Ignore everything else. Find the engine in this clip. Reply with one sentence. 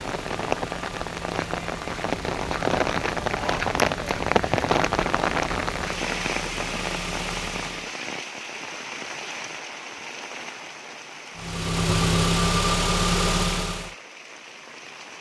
You can hear the engine from 0.0 to 7.9 s and from 11.3 to 13.9 s.